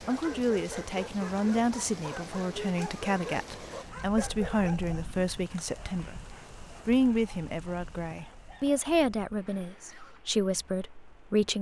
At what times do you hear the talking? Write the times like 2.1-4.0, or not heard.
0.1-6.2, 6.8-11.5.